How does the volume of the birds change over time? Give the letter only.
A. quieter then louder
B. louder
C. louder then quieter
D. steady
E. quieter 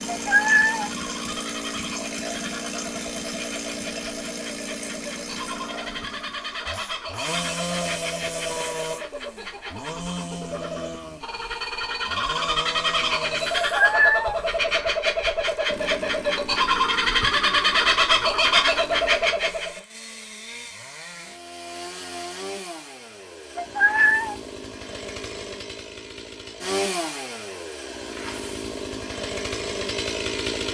B.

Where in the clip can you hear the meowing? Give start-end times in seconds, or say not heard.
0.1-0.9, 13.6-14.9, 23.6-24.4.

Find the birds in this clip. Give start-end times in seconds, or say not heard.
0.0-19.8.